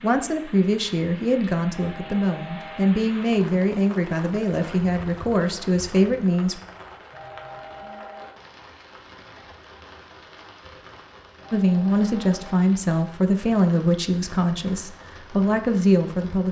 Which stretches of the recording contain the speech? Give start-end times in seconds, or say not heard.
0.0-6.6, 11.5-16.4.